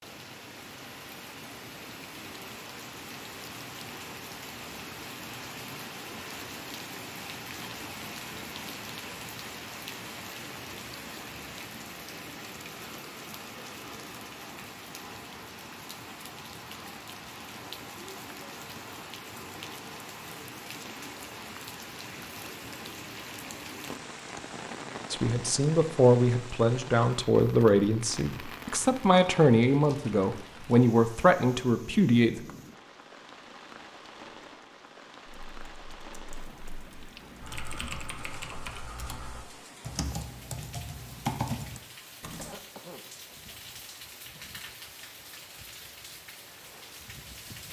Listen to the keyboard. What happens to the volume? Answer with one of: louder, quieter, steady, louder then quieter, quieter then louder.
louder.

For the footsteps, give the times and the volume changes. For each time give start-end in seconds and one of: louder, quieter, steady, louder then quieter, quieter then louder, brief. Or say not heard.
not heard.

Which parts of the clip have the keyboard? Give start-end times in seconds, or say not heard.
35.2-42.5.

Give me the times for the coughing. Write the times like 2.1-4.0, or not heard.
42.4-43.4.